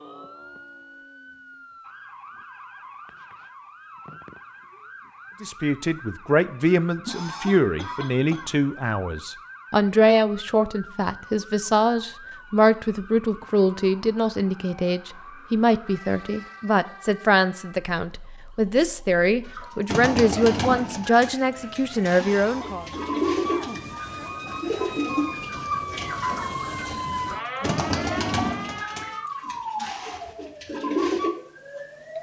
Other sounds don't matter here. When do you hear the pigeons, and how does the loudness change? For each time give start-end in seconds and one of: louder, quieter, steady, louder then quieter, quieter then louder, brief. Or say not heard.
19.4-31.3 quieter.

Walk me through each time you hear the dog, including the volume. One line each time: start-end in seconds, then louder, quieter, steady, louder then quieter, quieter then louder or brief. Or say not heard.
not heard.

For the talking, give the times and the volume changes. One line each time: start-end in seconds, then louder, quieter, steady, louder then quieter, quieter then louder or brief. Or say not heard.
5.4-22.9 steady.